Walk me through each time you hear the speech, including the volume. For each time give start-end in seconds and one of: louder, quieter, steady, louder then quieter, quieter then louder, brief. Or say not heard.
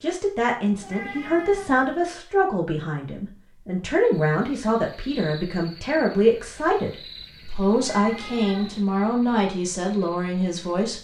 0.0-10.9 steady.